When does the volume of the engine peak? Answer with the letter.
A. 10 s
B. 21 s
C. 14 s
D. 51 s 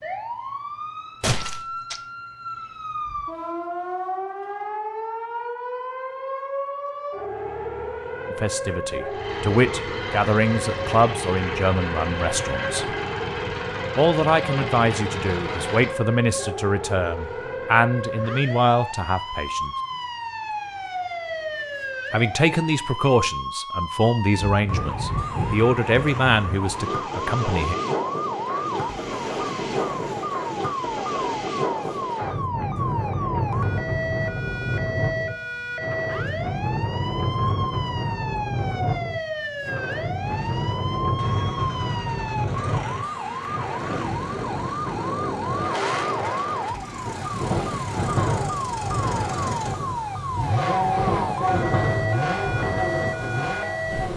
D.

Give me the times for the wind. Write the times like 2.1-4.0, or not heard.
24.3-54.1.